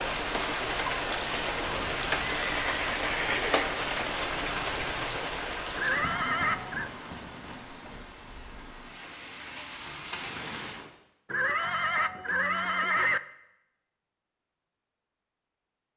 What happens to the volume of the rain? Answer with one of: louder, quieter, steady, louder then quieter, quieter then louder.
quieter.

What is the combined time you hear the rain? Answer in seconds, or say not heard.
11 s.